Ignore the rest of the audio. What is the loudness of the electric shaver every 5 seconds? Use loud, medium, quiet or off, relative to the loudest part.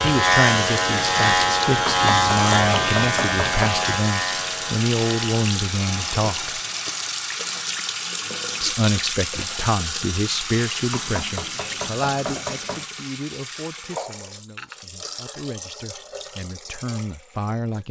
loud, quiet, off, off.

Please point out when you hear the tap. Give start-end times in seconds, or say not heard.
0.0-17.8.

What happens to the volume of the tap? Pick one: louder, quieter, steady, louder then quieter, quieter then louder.
quieter.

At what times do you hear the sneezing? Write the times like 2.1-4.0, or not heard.
not heard.